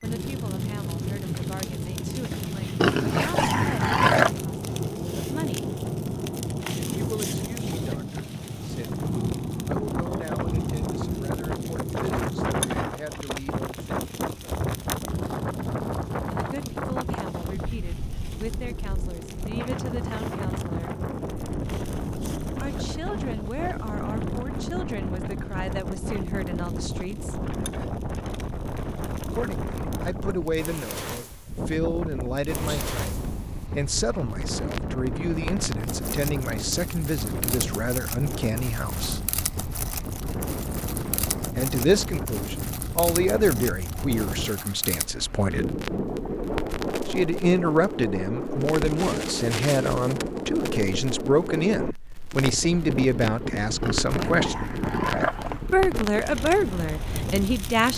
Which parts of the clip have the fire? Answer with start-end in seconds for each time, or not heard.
0.0-57.9.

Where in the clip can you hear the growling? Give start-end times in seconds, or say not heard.
2.8-4.3, 53.8-55.8.